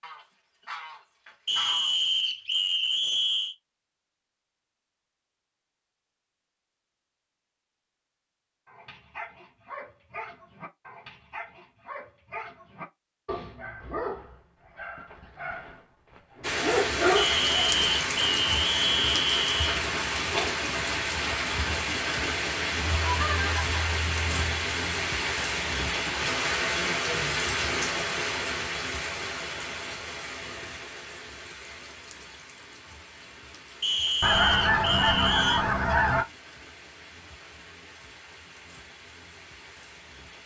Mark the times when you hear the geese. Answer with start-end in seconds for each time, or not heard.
0.0-1.9, 23.0-24.4, 34.2-36.2.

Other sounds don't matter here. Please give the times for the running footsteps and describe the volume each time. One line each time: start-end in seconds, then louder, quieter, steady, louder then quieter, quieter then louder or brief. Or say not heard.
not heard.